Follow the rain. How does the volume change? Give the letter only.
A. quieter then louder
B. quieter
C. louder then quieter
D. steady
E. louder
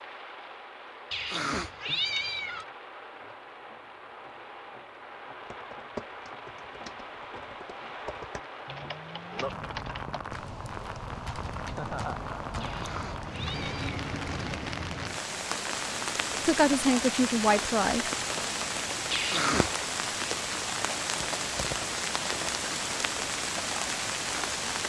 E.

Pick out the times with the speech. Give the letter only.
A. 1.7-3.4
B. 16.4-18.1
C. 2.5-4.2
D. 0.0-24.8
B.